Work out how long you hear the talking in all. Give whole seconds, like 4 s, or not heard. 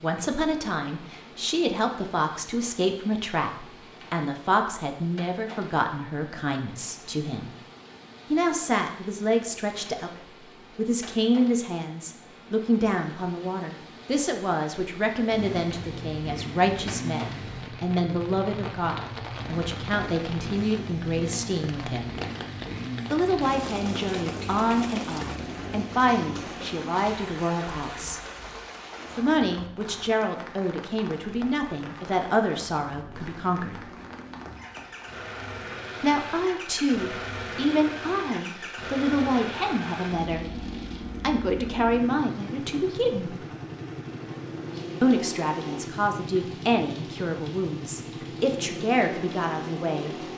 44 s.